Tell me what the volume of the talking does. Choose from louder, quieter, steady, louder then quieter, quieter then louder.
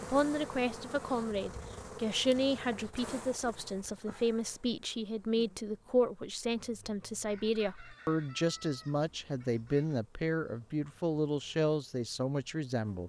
steady.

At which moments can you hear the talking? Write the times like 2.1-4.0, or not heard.
0.0-13.0.